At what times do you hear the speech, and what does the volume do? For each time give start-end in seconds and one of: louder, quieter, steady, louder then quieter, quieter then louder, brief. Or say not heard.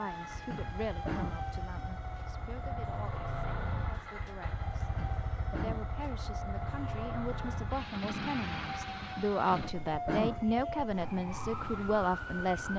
0.0-4.9 quieter
5.5-12.7 louder.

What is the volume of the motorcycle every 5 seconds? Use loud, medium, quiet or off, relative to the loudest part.
loud, loud, medium.